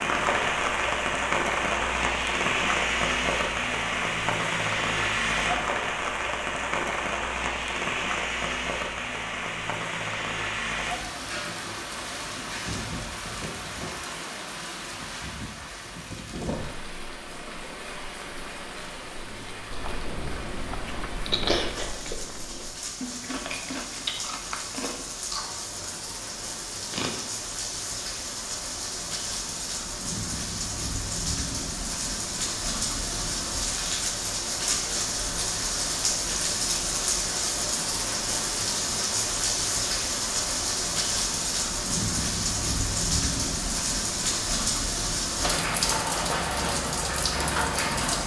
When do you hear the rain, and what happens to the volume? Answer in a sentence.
The rain can be heard from 0.0 to 48.2 s, getting quieter then louder.